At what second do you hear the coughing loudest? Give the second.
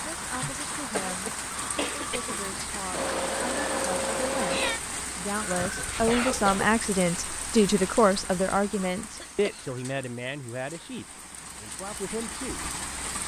6 s.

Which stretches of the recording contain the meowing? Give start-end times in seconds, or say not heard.
2.9-4.8.